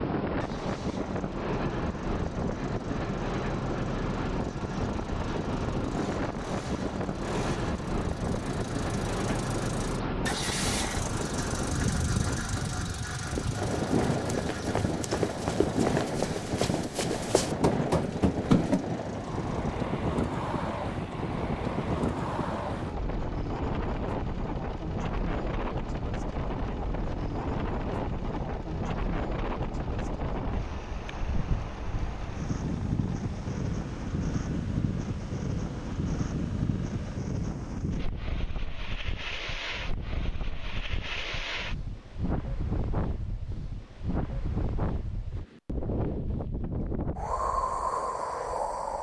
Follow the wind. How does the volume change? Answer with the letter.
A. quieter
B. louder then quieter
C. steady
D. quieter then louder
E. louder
C.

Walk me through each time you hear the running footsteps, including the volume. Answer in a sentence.
The running footsteps can be heard from 13.2 to 18.9 s, getting louder.